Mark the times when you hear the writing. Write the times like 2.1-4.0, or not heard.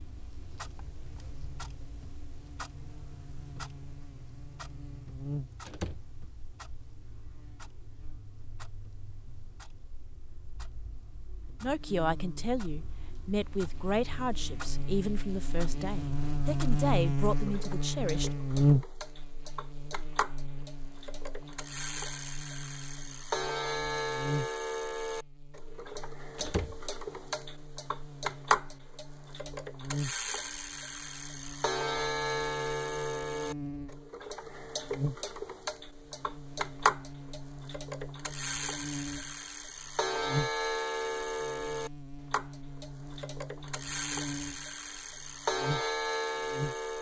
not heard.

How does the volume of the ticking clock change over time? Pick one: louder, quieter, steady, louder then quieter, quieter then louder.
louder.